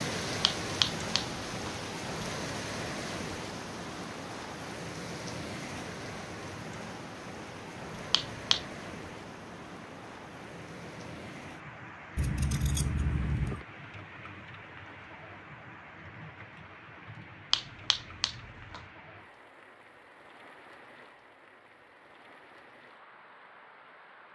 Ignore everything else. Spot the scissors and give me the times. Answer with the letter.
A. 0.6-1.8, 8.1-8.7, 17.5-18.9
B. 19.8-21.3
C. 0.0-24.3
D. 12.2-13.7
D.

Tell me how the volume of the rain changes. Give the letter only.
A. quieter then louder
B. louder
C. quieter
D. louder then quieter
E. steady
C.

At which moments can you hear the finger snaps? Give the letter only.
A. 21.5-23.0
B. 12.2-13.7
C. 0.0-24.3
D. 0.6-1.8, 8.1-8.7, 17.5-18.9
D.